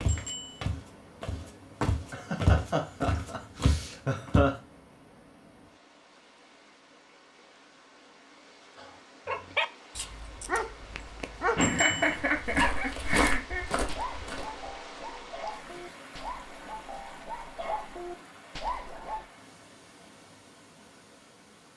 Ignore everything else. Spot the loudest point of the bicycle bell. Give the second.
12 s.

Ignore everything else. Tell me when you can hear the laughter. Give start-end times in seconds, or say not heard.
2.1-4.5, 11.6-13.7.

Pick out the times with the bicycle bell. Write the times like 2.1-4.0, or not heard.
0.1-0.7, 11.6-12.2.